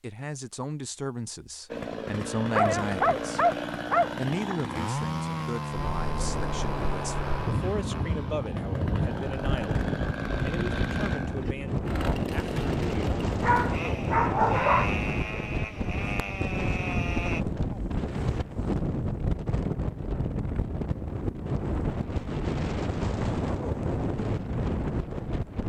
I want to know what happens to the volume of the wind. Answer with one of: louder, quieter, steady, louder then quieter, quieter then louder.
steady.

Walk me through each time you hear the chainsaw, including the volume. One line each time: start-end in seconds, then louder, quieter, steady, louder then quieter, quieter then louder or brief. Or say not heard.
1.7-17.4 steady.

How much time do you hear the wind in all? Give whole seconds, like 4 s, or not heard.
20 s.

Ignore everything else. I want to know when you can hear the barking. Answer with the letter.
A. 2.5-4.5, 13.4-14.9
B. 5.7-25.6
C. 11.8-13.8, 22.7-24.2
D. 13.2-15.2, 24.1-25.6
A.